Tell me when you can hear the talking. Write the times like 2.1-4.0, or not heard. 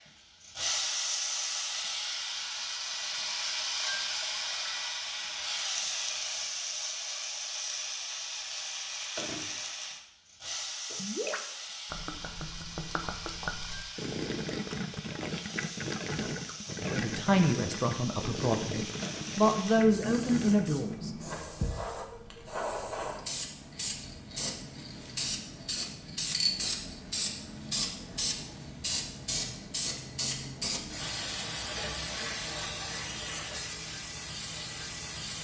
16.9-21.1.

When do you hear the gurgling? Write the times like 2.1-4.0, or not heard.
10.8-21.0.